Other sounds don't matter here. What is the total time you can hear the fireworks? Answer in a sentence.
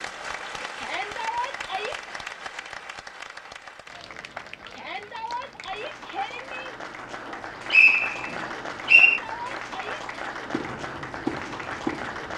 The fireworks can be heard for 2 seconds in total.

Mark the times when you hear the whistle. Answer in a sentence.
You can hear the whistle from 7.7 to 9.2 s.